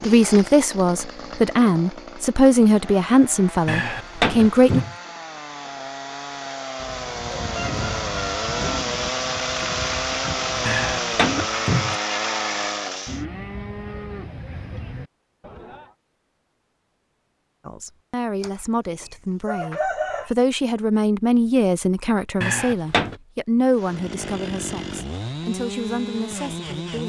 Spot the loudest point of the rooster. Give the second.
20 s.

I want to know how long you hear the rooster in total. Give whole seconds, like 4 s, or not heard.
4 s.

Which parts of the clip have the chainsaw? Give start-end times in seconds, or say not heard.
0.0-13.2, 23.7-27.0.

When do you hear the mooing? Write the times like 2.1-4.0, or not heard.
7.0-15.9.